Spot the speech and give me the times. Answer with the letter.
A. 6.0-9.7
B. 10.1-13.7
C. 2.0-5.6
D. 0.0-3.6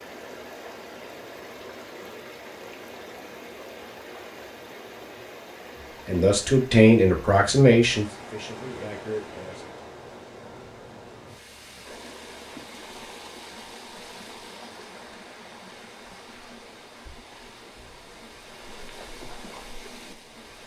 A.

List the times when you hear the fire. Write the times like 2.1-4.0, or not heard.
not heard.